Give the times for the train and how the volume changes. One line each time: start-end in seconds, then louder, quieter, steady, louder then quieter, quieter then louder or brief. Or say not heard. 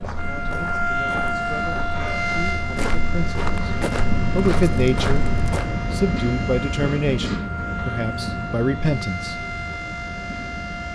0.0-10.9 louder then quieter.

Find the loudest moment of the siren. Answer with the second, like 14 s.
1 s.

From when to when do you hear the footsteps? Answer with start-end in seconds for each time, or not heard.
0.0-5.8.